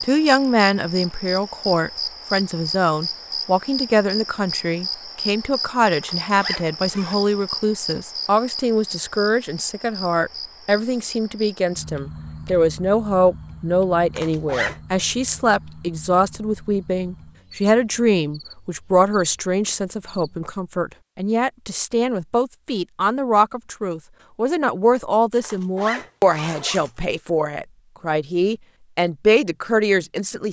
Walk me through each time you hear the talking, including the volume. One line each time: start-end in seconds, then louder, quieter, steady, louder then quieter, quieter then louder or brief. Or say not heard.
0.0-30.4 steady.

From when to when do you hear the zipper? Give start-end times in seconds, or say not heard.
6.0-7.2, 14.2-14.8, 25.4-26.9.